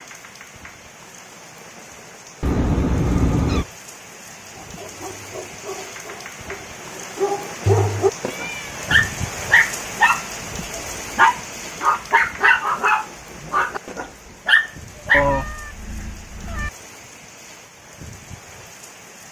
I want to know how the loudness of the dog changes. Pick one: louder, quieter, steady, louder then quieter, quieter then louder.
louder.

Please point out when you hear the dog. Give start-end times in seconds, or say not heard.
4.5-15.2.